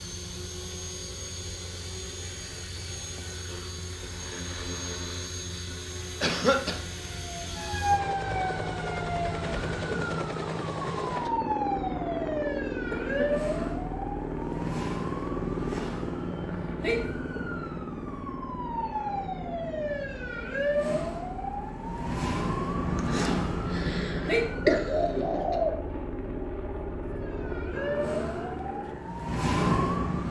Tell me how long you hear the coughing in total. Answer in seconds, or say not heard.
4 s.